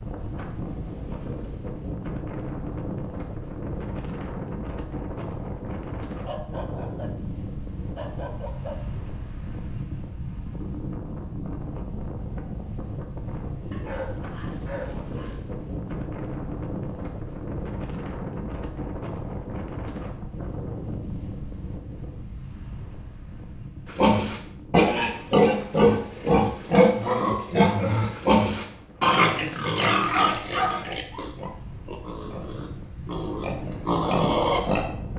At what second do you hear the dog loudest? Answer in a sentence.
The volume of the dog peaks at 31 seconds.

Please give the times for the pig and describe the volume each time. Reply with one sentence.
You can hear the pig from 23.9 to 34.9 s, getting quieter then louder.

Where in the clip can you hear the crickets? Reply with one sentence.
The crickets can't be heard in this clip.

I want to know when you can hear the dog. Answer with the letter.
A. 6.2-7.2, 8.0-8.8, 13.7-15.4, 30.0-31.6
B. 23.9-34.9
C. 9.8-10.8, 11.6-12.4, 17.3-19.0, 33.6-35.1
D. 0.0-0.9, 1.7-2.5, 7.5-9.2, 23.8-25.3
A.